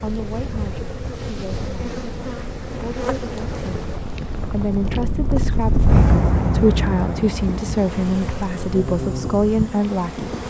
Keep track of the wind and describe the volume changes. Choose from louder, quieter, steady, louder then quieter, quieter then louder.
louder then quieter.